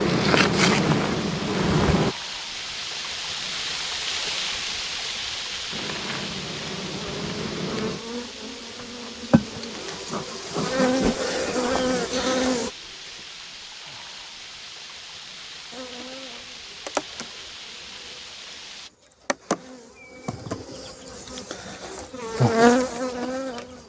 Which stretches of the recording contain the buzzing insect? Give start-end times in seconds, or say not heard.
0.0-2.1, 5.7-12.7, 15.7-23.8.